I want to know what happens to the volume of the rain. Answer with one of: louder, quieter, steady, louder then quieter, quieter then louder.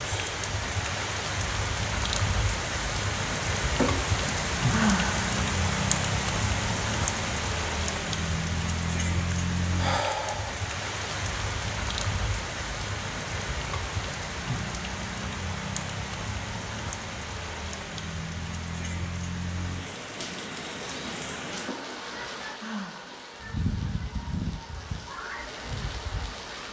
quieter.